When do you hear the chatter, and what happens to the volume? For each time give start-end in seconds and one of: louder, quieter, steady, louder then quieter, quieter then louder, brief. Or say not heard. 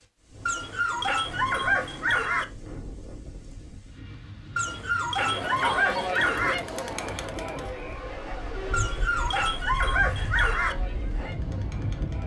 5.2-12.2 quieter.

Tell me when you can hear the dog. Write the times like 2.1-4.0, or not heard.
0.5-2.5, 4.5-6.5, 8.7-10.8.